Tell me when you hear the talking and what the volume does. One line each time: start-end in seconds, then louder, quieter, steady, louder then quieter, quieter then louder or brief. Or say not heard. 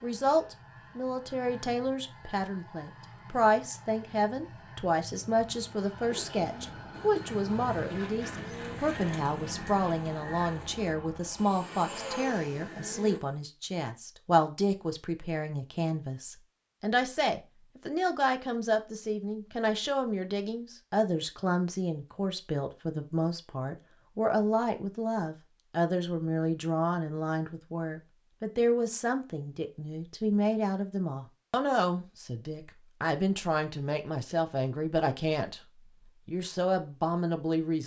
0.0-37.8 steady.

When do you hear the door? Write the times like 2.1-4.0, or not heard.
not heard.